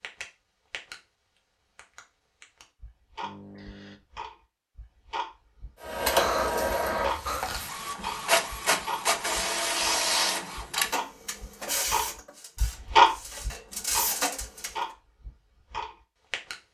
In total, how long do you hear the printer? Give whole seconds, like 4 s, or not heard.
9 s.